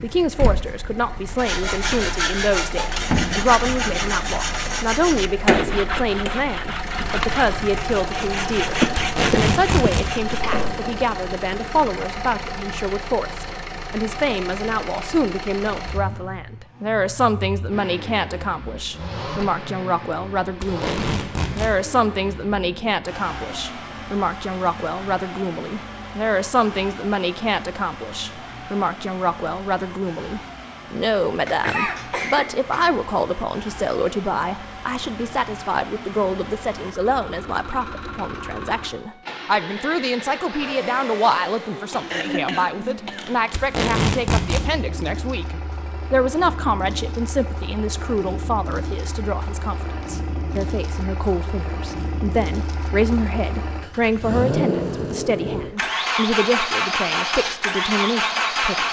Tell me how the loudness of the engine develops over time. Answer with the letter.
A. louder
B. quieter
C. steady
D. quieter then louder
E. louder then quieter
D.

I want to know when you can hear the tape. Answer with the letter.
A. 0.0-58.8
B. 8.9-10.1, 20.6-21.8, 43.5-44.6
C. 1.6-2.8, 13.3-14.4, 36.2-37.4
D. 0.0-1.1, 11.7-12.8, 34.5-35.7
B.